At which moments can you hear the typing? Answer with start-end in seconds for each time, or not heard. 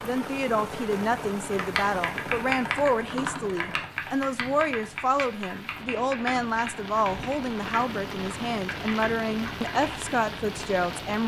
1.5-10.2.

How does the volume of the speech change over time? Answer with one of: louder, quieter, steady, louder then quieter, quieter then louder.
steady.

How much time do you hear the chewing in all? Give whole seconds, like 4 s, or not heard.
not heard.